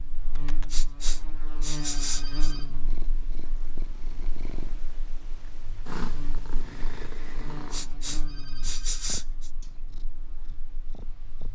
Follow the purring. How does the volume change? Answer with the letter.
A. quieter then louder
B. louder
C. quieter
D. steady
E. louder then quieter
E.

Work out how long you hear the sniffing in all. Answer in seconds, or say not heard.
4 s.